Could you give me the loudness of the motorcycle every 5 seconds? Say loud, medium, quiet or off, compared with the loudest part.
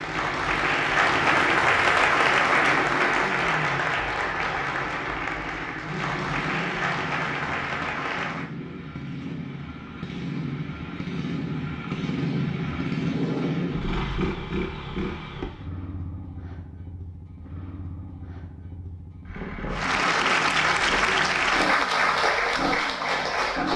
medium, medium, loud, medium, medium.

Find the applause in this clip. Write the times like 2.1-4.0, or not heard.
0.0-8.5, 19.7-23.7.